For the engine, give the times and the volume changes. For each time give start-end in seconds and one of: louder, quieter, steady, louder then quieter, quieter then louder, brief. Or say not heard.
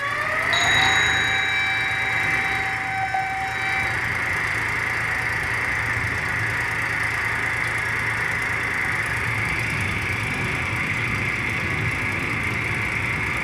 0.0-13.3 steady.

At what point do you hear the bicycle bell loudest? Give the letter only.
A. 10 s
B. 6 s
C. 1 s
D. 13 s
C.